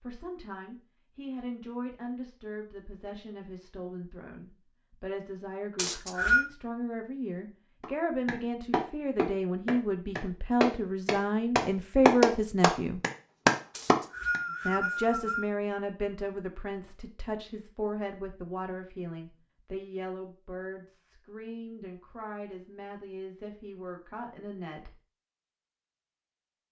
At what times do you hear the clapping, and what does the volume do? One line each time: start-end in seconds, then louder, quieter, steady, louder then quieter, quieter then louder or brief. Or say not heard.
7.8-14.4 louder.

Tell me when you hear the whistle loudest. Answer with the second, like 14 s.
6 s.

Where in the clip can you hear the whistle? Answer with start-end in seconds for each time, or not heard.
5.8-6.5, 13.7-15.4.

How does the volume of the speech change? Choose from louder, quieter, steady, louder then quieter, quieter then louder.
louder then quieter.